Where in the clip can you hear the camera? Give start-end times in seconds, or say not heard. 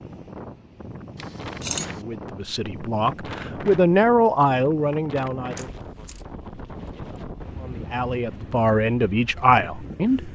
1.1-2.0, 5.5-6.2.